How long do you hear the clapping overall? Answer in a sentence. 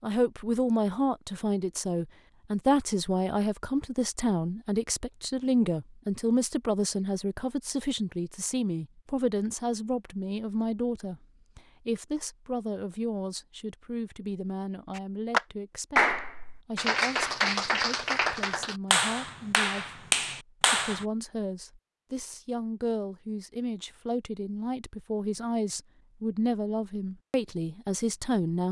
The clapping can be heard for 6 seconds in total.